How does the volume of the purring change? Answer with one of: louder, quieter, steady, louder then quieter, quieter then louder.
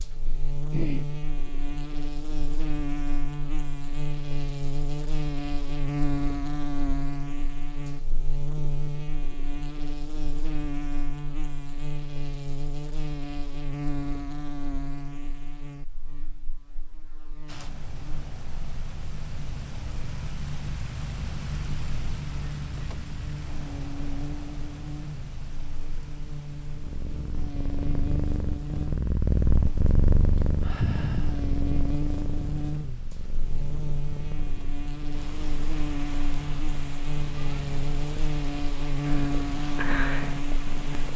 quieter then louder.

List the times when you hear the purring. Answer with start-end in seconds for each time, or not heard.
26.6-41.1.